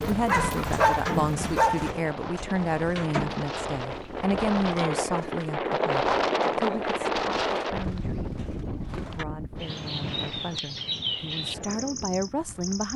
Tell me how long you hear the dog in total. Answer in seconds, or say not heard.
2 s.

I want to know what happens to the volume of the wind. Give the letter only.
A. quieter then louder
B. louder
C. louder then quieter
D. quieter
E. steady
C.